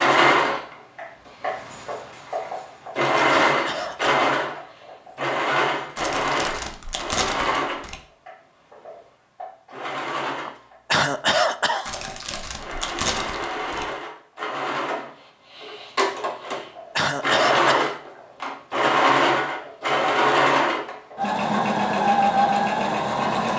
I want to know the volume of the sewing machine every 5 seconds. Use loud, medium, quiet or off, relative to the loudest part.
loud, medium, medium, loud, loud.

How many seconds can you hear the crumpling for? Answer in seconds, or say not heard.
4 s.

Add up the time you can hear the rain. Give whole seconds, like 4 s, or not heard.
not heard.